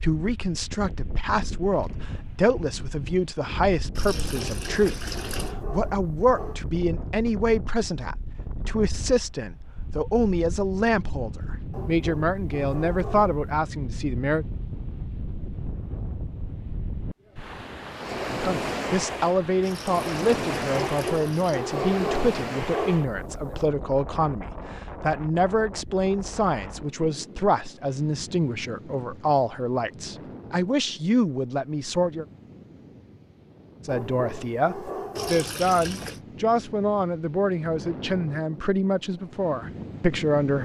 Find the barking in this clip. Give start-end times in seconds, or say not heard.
4.3-6.7, 11.7-13.3, 20.7-23.6, 33.9-35.5.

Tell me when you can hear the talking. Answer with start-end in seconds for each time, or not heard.
0.0-14.4, 18.3-32.2, 33.9-40.6.